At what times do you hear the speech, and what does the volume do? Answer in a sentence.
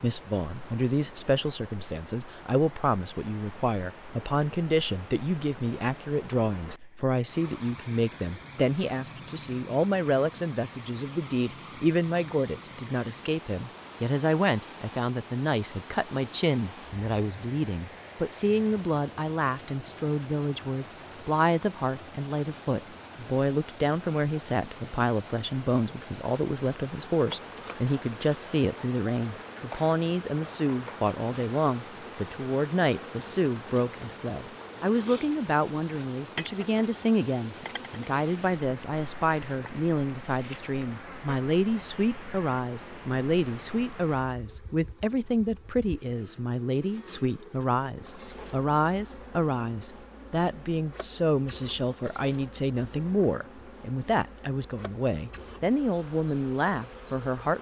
You can hear the speech from 0.0 to 57.5 s, at a steady volume.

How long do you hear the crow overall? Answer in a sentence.
You can't hear the crow here.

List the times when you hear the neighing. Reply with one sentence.
You can't hear the neighing here.